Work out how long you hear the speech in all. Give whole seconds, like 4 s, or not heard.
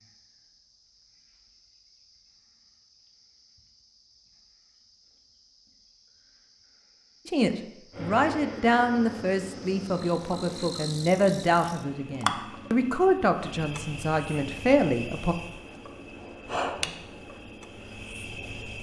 8 s.